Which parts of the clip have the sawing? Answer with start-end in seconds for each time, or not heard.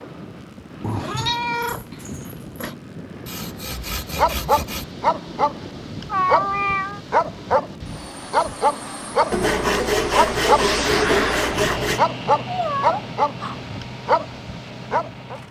3.2-4.9, 9.3-12.0.